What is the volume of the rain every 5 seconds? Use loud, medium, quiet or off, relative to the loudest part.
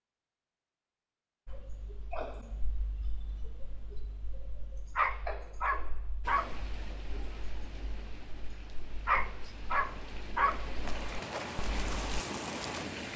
off, medium, loud.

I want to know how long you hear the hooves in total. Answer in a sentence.
You can hear the hooves for 2 seconds altogether.